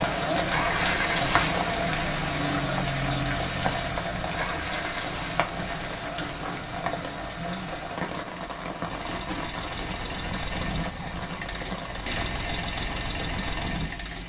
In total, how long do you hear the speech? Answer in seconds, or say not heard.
not heard.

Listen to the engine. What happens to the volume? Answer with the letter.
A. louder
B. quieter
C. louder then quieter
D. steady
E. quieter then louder
E.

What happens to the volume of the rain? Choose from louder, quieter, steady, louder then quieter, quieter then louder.
quieter.